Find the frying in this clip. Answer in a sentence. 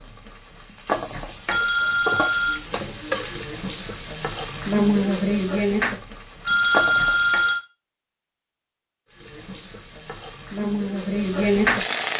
The frying can be heard from 0.0 to 7.5 s and from 9.1 to 12.1 s.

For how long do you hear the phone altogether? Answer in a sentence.
The phone can be heard for 2 seconds in total.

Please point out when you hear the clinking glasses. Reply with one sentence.
You can't hear the clinking glasses here.